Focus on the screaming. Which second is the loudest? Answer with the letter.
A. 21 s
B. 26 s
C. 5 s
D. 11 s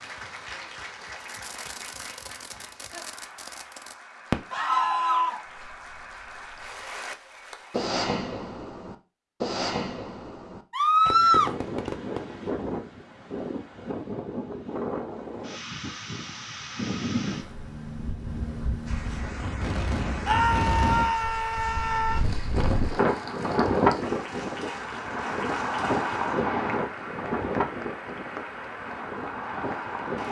D.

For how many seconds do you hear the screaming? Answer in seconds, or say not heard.
4 s.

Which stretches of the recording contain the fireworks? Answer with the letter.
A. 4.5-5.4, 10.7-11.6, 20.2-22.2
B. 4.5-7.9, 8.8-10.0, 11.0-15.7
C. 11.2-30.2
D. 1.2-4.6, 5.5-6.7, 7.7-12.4
D.